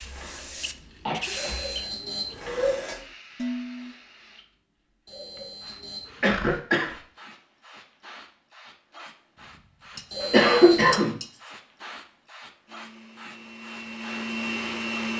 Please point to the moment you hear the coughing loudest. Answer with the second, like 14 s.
11 s.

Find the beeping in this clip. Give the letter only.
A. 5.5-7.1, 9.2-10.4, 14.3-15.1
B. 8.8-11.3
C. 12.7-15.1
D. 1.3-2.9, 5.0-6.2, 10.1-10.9
D.